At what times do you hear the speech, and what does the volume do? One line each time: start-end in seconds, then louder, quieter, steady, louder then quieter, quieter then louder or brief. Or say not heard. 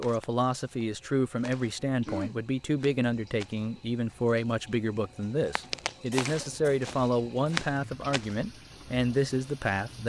0.0-10.0 steady.